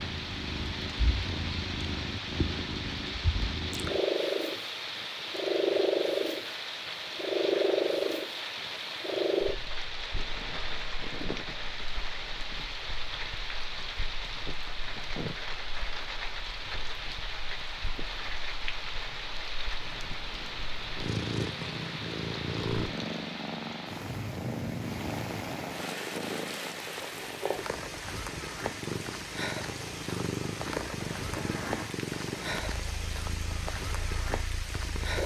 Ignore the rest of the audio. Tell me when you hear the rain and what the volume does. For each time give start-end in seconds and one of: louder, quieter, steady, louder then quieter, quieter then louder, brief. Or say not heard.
0.0-35.2 steady.